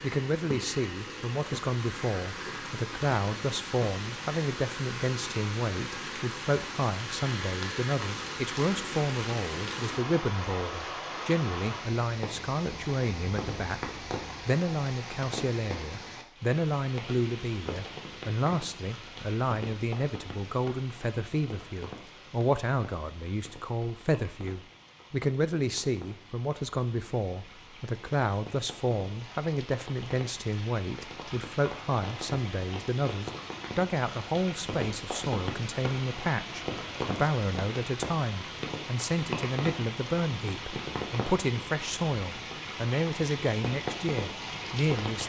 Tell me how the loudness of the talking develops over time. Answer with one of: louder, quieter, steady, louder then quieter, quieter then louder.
steady.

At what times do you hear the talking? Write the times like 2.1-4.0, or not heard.
0.0-45.2.